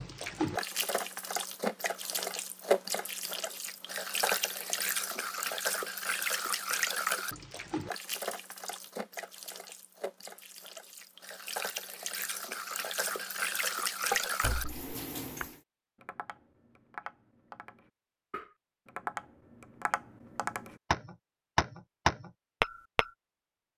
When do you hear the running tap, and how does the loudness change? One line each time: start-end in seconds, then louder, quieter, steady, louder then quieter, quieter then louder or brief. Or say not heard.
0.0-15.6 quieter then louder.